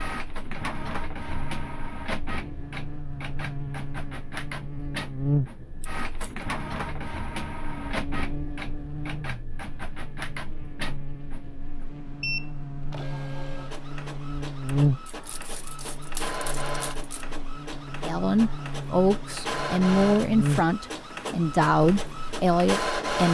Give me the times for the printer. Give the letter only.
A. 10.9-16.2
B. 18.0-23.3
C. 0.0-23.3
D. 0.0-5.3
C.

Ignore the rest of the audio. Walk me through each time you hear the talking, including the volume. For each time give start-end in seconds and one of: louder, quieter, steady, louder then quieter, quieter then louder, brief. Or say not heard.
18.0-23.3 steady.